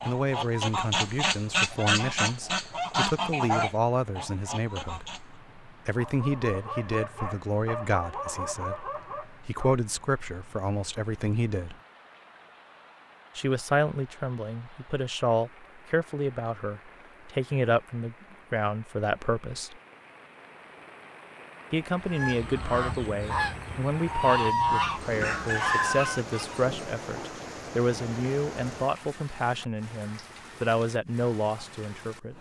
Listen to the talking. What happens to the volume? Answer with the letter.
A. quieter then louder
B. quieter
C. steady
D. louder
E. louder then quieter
C.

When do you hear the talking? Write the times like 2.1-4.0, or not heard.
0.0-11.8, 13.3-19.8, 21.7-32.3.